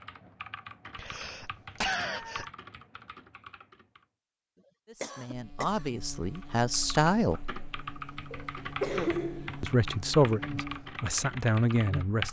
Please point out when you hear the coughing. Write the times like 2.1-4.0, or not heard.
0.9-2.5, 5.0-5.8, 8.3-9.8.